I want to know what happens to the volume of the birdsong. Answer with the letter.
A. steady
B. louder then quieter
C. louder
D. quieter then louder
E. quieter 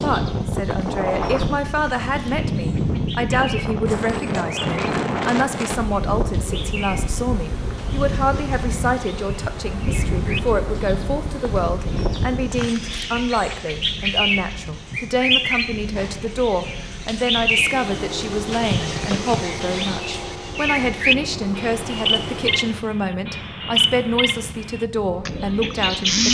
C.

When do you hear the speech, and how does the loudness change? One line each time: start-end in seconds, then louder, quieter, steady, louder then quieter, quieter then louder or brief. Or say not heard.
0.0-26.2 steady.